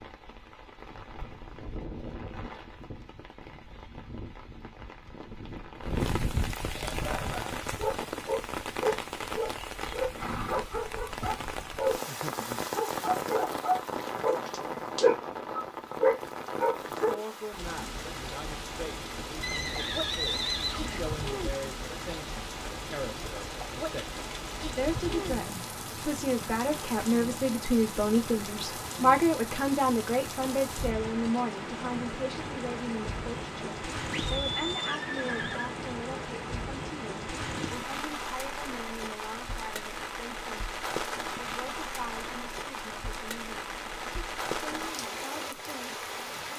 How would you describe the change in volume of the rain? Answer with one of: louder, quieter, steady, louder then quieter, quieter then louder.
steady.